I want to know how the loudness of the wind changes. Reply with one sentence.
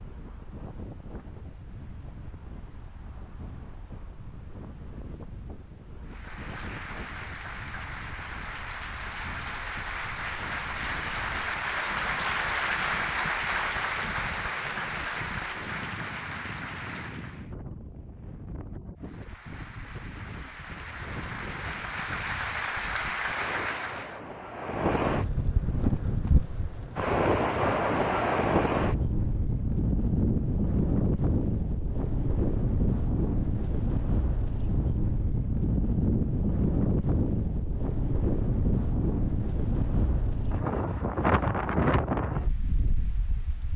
The volume of the wind goes up.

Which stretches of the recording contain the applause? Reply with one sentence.
You can hear the applause from 6.0 to 17.4 s and from 18.9 to 24.2 s.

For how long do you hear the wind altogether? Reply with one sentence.
The wind can be heard for 44 seconds in total.